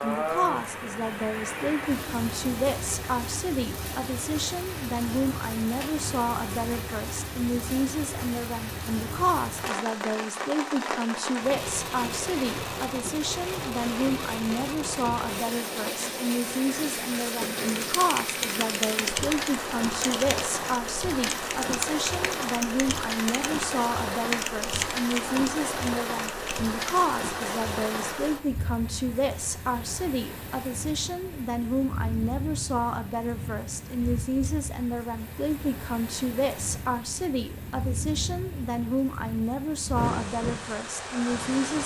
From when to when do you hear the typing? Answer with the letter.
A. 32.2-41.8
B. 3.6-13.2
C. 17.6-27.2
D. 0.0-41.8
C.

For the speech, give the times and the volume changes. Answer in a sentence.
The speech can be heard from 0.0 to 41.8 s, at a steady volume.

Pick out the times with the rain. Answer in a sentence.
You can hear the rain from 0.0 to 41.8 s.